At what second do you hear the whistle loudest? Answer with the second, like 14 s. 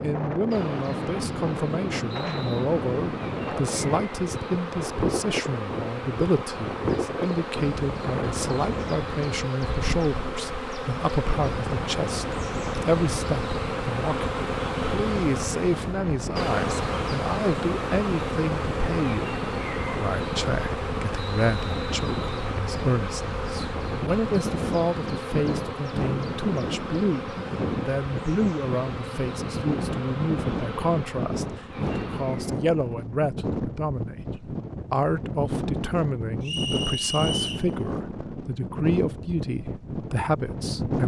37 s.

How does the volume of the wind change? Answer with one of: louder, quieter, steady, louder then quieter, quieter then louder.
steady.